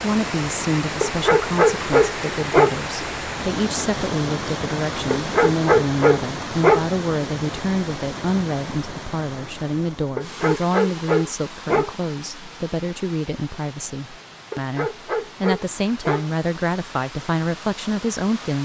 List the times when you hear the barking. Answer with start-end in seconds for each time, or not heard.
1.0-2.8, 5.1-6.8, 10.2-11.9, 14.5-16.3.